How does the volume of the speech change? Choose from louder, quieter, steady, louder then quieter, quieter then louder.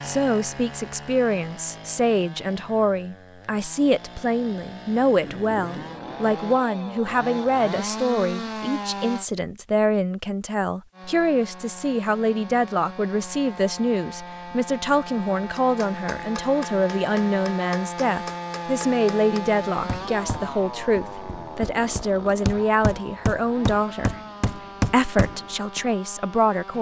steady.